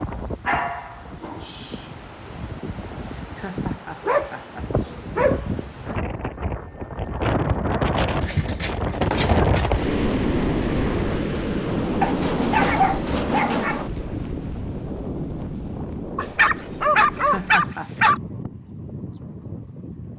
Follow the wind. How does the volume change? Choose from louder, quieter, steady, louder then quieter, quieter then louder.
louder then quieter.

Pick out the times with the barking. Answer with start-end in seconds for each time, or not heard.
0.5-2.2, 4.0-5.5, 8.2-10.1, 12.0-13.8, 16.1-18.2.